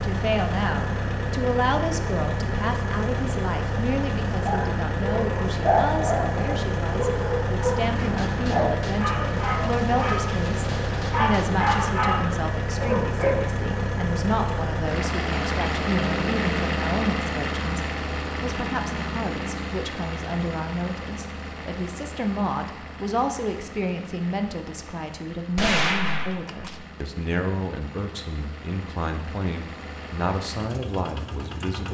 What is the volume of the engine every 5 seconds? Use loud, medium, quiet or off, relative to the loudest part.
loud, loud, loud, loud, medium, quiet, medium.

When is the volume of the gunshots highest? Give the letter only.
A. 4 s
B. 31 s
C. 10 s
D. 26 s
D.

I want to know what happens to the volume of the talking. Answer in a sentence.
The loudness of the talking stays about the same.